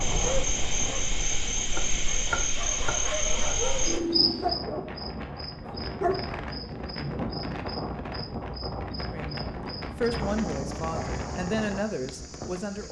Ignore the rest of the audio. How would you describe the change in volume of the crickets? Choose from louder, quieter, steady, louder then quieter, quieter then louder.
quieter.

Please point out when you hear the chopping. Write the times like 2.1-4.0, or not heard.
1.6-3.0.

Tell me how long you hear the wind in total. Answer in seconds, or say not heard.
13 s.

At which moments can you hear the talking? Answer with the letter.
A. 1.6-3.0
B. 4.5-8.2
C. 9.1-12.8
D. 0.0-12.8
C.